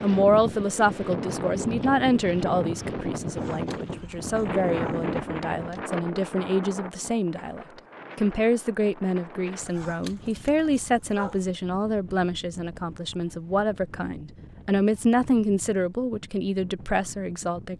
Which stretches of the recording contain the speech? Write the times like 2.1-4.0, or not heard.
0.0-17.7.